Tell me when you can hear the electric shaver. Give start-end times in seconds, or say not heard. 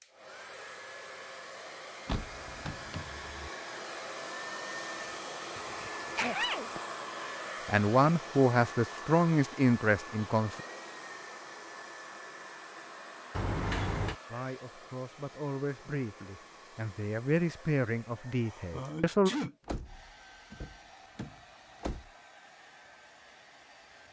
not heard.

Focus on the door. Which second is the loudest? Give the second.
14 s.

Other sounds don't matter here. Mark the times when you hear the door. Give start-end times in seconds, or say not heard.
2.0-3.5, 13.3-14.2, 19.6-22.1.